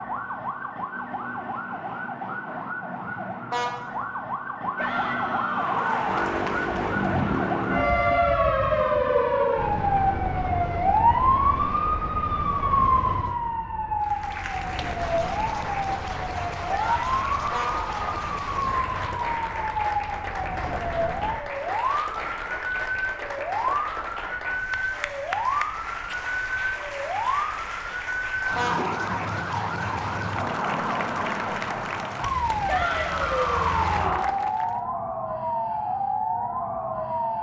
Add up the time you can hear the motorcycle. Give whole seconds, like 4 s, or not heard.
6 s.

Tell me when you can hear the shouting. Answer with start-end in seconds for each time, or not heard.
4.8-6.4, 16.6-18.3, 32.6-34.3.